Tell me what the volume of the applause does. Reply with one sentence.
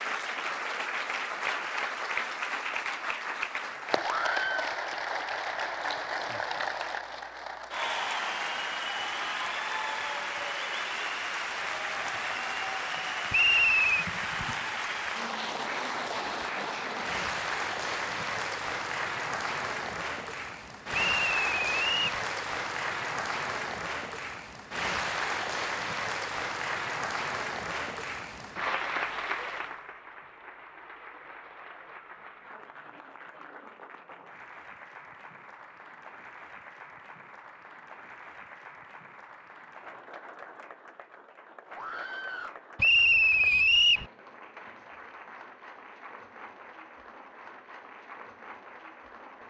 The volume of the applause goes down.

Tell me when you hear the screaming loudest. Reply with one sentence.
The volume of the screaming peaks at 4 seconds.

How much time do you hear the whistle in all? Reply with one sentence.
You can hear the whistle for 3 seconds altogether.